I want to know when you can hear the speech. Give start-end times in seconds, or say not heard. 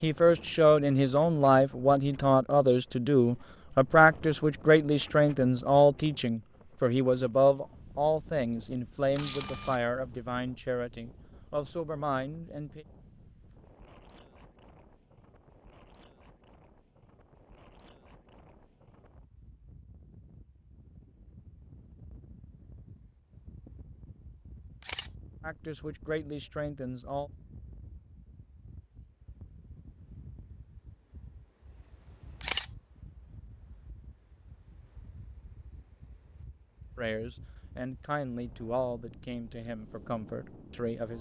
0.0-12.8, 25.4-27.3, 37.0-41.1.